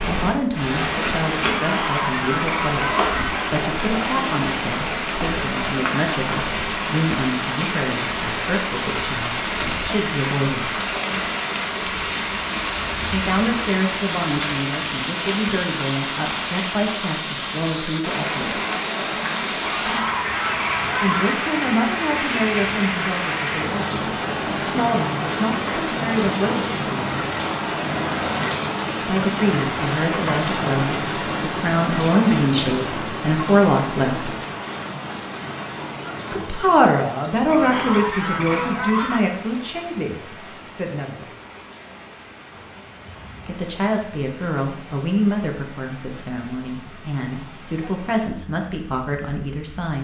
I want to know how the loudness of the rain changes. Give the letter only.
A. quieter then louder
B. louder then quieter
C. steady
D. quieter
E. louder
D.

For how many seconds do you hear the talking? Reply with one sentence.
The talking can be heard for 39 seconds in total.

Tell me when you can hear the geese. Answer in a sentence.
You can hear the geese from 1.6 to 3.5 s, from 19.6 to 21.4 s and from 37.5 to 39.2 s.